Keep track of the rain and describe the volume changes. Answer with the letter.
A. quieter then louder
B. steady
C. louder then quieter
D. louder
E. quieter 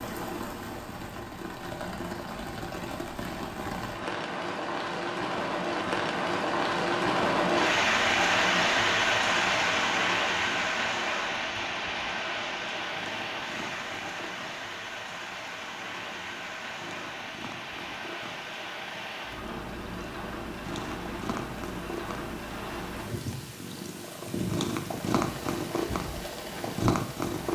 C.